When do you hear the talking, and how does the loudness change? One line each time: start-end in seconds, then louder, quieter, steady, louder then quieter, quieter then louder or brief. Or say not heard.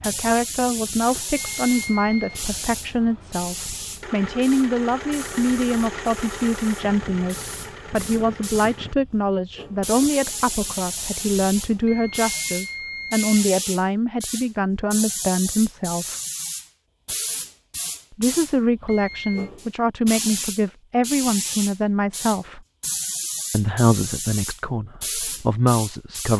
0.0-16.1 steady
18.1-22.6 steady
23.5-26.3 brief.